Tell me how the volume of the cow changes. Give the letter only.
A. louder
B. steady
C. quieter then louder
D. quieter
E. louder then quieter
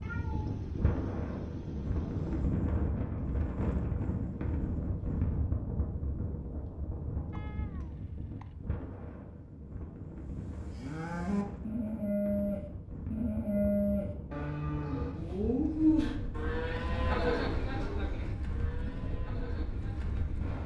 D.